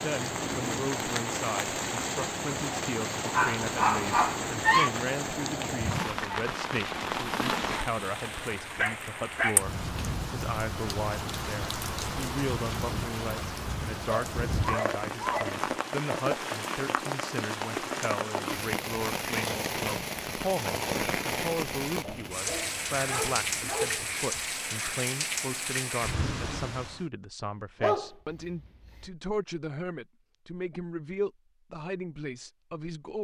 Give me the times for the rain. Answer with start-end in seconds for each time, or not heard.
0.0-27.1.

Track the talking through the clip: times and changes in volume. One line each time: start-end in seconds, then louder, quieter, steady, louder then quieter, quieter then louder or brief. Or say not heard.
0.0-33.2 steady.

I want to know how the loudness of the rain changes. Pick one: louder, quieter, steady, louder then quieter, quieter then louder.
steady.